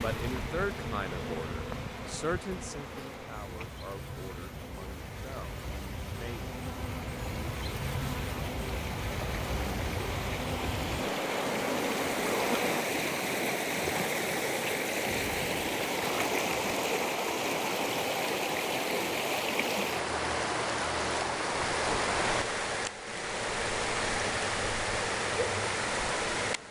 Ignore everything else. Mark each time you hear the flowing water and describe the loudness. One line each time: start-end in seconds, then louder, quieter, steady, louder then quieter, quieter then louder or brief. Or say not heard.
0.0-26.6 louder.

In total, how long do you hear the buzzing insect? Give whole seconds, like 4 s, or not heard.
13 s.